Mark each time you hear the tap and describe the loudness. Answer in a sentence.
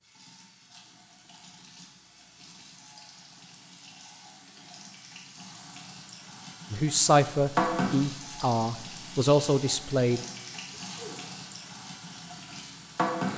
The tap can be heard from 0.0 to 13.3 s, getting louder then quieter.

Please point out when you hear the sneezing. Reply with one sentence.
The sneezing can be heard from 10.6 to 11.2 s.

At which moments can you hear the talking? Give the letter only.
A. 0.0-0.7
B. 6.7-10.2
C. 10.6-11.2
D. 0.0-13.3
B.